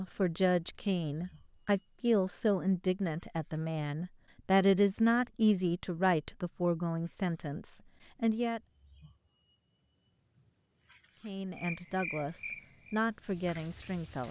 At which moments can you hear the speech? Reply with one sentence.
The speech can be heard from 0.0 to 8.6 s and from 11.2 to 14.2 s.